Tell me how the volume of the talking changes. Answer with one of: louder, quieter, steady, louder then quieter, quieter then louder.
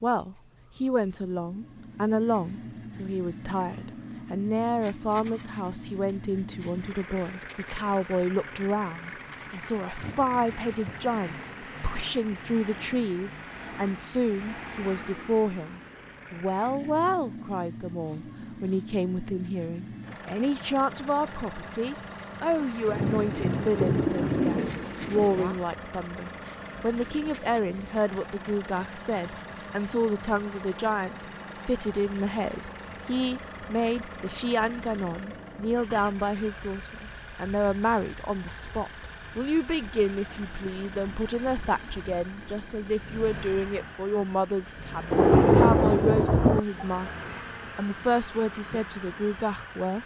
steady.